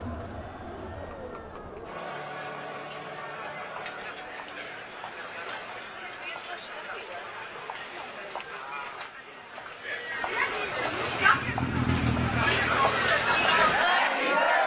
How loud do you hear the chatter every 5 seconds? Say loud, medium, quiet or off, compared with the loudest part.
quiet, quiet, loud.